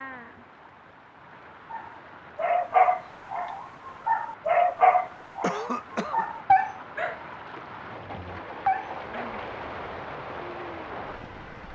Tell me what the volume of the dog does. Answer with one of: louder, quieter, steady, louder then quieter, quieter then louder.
quieter.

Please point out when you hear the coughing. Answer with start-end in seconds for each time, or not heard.
5.4-6.3.